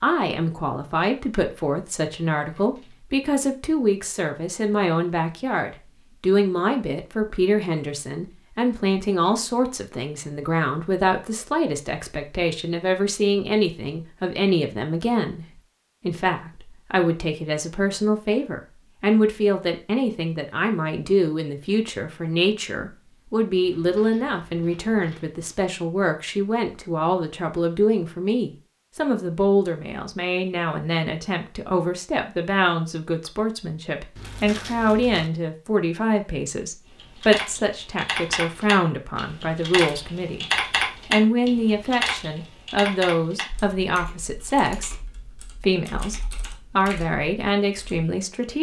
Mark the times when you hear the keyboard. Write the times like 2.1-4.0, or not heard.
36.9-48.0.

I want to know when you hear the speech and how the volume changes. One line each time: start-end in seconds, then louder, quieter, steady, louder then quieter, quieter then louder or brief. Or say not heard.
0.0-40.5 steady
41.0-48.5 steady.